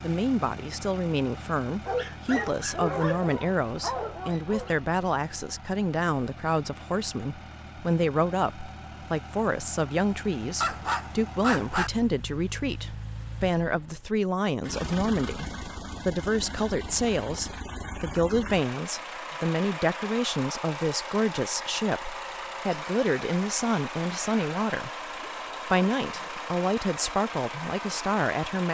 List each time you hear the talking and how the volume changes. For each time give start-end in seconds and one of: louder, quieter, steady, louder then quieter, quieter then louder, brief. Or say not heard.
0.0-24.9 steady
25.6-28.6 brief.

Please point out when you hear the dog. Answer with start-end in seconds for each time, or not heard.
1.9-4.8, 10.6-11.9, 25.1-26.4.